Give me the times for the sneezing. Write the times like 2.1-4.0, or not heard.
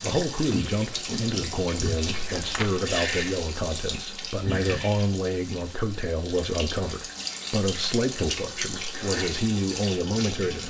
4.4-4.9.